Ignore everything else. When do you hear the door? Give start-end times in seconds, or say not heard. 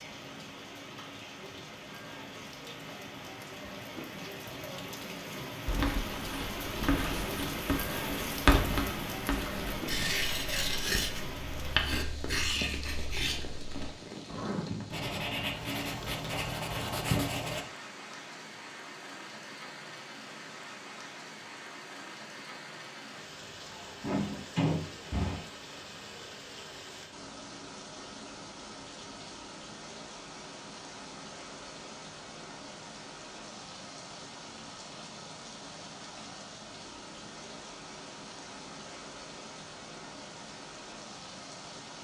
24.0-25.4.